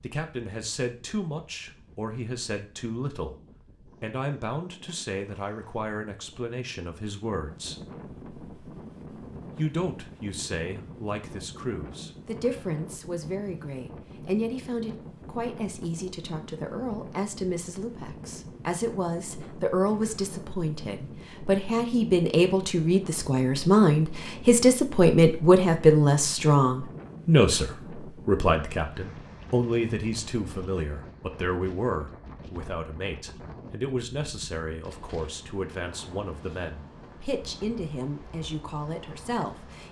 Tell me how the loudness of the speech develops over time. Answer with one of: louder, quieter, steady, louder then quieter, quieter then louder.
louder then quieter.